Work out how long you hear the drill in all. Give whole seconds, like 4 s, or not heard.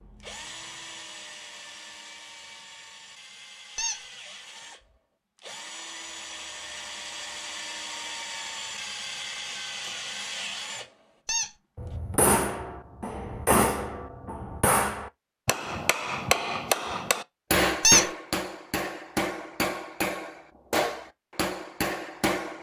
12 s.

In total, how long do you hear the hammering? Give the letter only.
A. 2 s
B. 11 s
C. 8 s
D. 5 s
B.